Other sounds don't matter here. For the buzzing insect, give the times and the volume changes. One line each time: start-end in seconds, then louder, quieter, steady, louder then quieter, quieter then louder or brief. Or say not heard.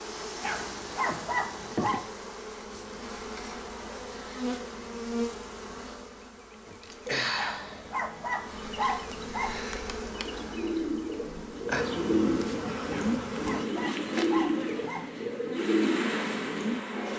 0.0-17.1 steady.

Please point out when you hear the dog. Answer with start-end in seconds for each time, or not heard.
0.4-2.0, 7.3-9.7, 12.9-15.2.